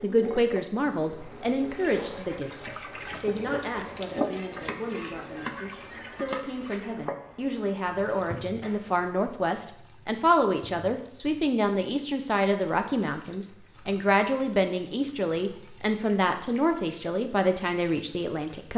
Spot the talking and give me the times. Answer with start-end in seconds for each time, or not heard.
0.0-18.7.